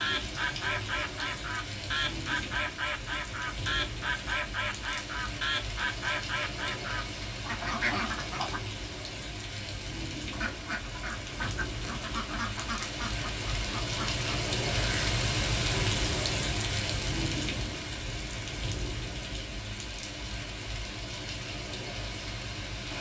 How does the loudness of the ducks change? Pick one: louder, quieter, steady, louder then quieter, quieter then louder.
quieter.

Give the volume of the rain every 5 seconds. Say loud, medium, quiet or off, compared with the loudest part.
medium, medium, loud, loud, medium.